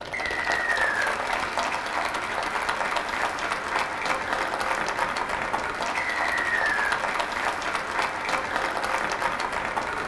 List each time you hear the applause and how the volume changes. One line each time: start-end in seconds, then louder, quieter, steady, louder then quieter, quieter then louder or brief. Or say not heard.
0.0-10.0 steady.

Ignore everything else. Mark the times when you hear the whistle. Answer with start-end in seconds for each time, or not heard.
0.1-1.1, 6.0-7.0.